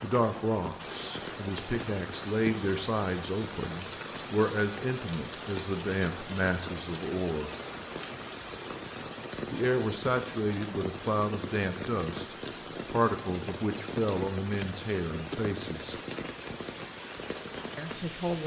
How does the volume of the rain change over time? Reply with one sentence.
The volume of the rain stays about the same.